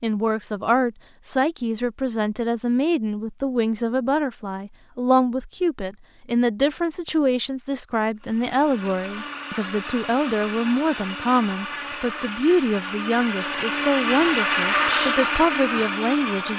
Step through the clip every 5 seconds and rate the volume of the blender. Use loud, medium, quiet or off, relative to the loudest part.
off, medium, loud, loud.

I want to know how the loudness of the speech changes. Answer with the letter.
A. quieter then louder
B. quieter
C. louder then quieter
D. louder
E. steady
E.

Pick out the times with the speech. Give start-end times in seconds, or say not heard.
0.0-16.5.